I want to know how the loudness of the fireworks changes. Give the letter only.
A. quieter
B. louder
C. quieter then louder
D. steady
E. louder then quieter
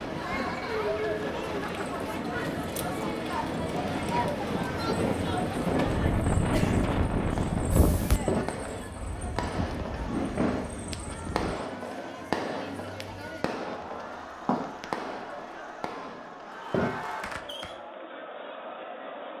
D.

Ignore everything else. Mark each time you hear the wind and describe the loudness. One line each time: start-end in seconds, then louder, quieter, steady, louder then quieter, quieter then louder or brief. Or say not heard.
0.0-11.6 louder then quieter.